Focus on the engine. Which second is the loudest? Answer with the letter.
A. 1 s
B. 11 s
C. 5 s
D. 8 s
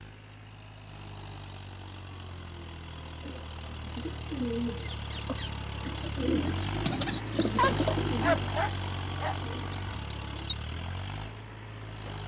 D.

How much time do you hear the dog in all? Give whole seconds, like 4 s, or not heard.
2 s.